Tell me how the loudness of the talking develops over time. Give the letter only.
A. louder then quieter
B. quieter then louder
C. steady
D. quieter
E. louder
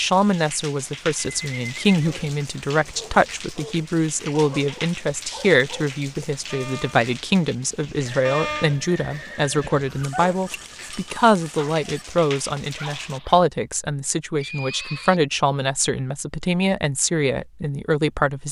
C.